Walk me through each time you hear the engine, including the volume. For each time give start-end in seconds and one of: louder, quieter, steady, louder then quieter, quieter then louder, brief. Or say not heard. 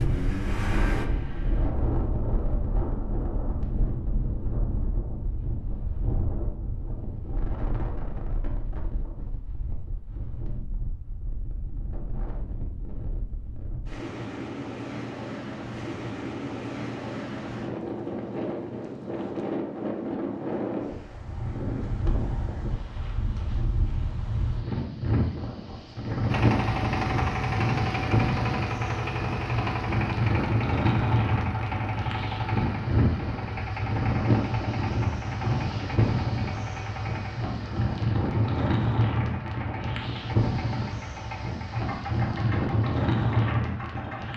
0.0-1.7 brief
26.3-44.3 quieter.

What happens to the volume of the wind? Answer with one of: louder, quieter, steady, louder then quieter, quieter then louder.
louder.